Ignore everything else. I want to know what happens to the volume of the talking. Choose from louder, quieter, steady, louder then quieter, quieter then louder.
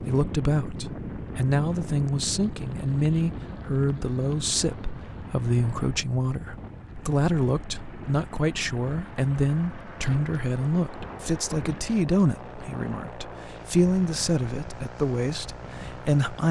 steady.